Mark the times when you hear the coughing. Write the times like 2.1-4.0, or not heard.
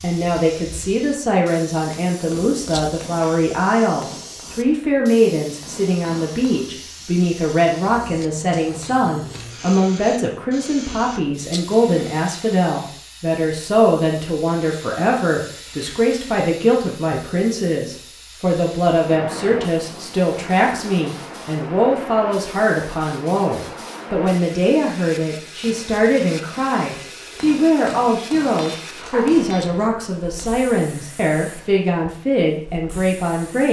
not heard.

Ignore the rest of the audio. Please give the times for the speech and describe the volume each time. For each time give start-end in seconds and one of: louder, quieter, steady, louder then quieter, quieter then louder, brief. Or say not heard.
0.0-33.6 steady.